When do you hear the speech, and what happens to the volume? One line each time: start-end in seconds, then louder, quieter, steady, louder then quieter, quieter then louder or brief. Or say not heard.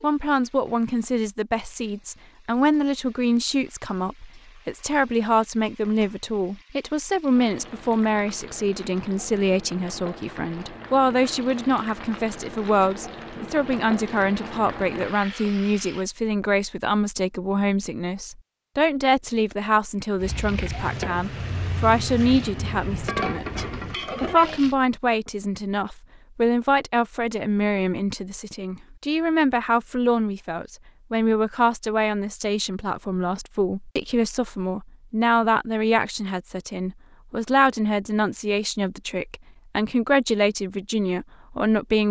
0.0-42.0 steady.